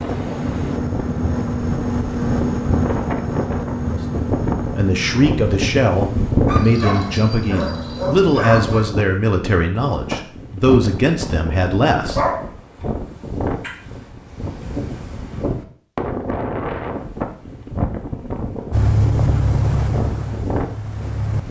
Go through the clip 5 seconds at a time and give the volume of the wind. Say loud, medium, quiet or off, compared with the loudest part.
loud, loud, medium, loud, medium.